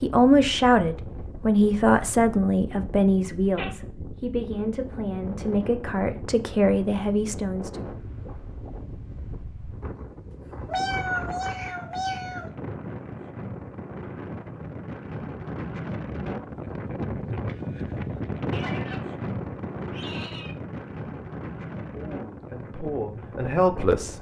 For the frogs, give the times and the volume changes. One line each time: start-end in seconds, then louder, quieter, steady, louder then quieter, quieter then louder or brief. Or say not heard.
not heard.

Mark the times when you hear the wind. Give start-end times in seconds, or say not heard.
0.0-24.1.